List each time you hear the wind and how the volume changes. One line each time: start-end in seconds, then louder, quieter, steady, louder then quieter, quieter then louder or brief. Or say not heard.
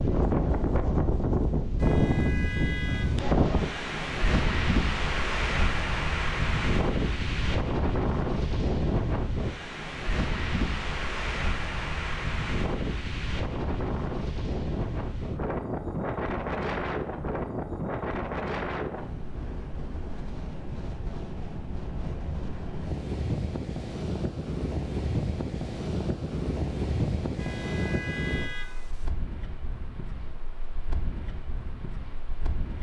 0.0-32.7 quieter.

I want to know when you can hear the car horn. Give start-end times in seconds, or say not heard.
1.8-3.2, 27.4-29.1.